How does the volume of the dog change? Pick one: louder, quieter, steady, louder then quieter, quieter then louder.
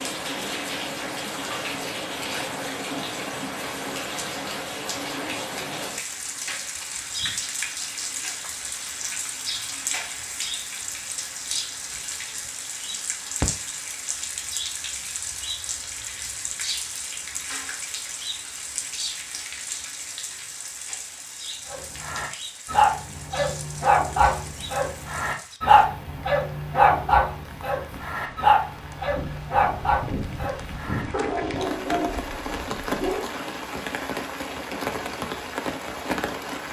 quieter.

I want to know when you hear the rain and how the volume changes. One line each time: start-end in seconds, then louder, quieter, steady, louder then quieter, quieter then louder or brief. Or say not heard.
0.0-36.6 quieter then louder.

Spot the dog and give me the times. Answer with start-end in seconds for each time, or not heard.
21.7-33.3.